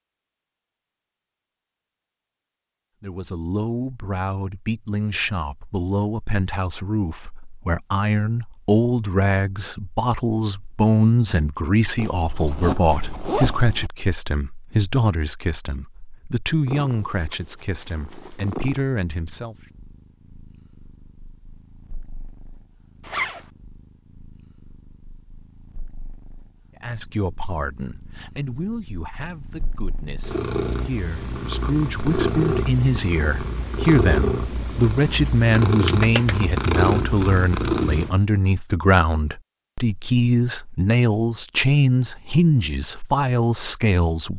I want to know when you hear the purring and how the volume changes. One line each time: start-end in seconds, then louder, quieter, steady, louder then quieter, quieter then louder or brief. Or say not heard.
16.6-38.1 quieter then louder.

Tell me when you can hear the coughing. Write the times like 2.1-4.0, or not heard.
not heard.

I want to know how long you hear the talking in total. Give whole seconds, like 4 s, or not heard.
34 s.